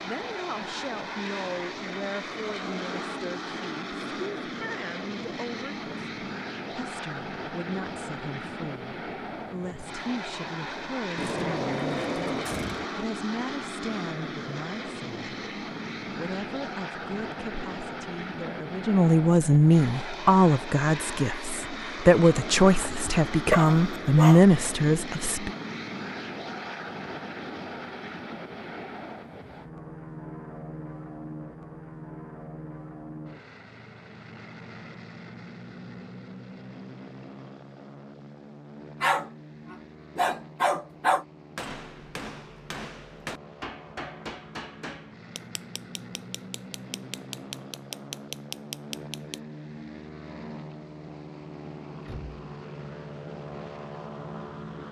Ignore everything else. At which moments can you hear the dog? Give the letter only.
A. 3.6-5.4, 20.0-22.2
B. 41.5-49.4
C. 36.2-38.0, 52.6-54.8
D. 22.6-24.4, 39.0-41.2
D.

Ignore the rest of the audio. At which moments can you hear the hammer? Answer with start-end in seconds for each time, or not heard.
41.5-49.4.